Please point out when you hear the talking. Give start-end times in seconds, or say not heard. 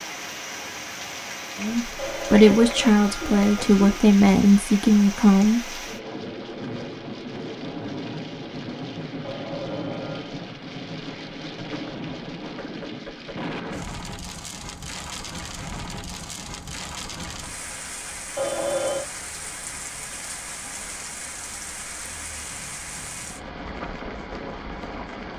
1.6-5.8.